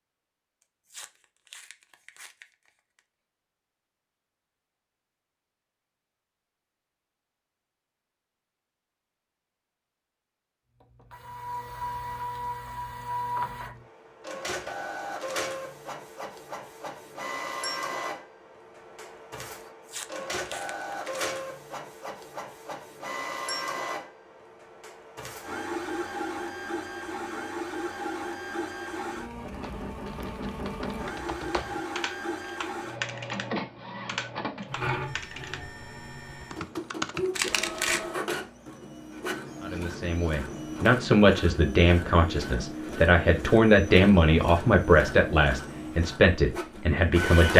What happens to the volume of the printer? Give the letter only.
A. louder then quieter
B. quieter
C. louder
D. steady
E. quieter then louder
D.